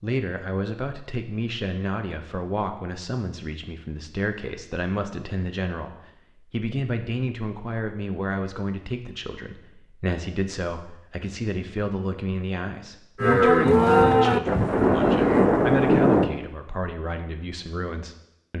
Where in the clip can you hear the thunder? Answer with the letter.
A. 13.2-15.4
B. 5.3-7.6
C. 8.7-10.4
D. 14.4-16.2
D.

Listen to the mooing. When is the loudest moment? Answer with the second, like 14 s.
14 s.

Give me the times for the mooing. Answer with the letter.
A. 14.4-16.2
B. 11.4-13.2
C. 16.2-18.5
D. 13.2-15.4
D.